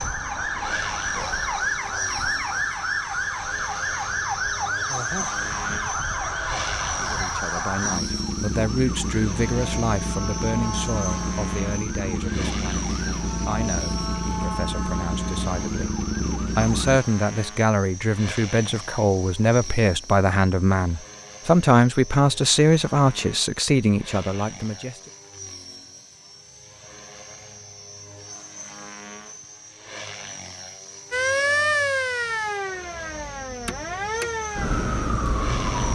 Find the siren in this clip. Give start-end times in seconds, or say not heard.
0.0-17.0, 31.1-35.8.